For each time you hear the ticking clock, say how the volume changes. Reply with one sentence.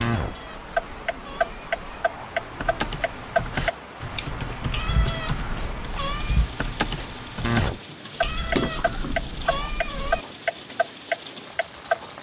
The ticking clock can be heard from 0.0 to 12.1 s, getting quieter then louder.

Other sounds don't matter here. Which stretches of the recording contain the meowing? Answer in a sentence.
The meowing can be heard from 0.2 to 2.0 s, from 4.7 to 6.5 s and from 8.2 to 10.2 s.